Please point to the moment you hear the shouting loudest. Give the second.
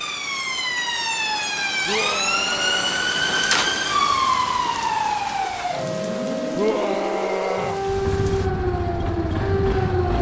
7 s.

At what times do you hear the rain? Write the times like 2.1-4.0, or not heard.
0.0-8.5.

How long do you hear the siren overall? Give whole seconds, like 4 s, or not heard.
10 s.